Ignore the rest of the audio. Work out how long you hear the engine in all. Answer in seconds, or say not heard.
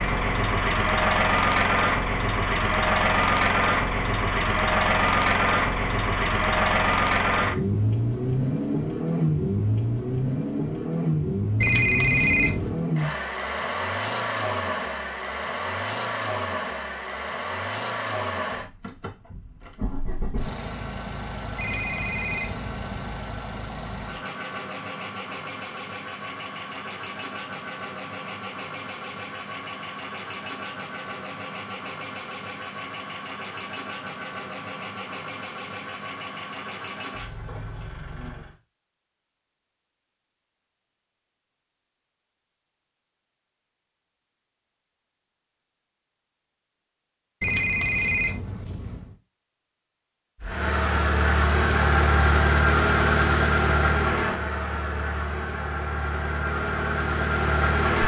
46 s.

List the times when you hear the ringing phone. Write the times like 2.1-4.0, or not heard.
11.6-12.8, 21.6-23.1, 47.4-49.1.